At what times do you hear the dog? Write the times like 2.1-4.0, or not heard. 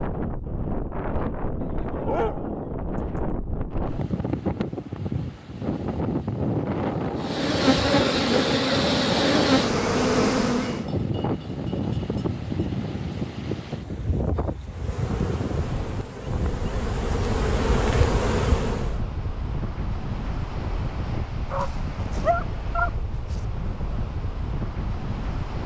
1.6-3.3, 21.5-23.4.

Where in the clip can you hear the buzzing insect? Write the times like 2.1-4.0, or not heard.
7.2-10.8, 14.7-19.0.